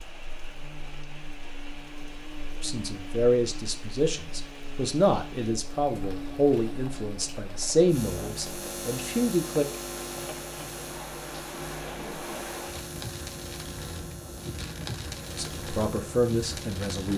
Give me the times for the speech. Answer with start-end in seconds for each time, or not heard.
2.6-9.7, 15.3-17.1.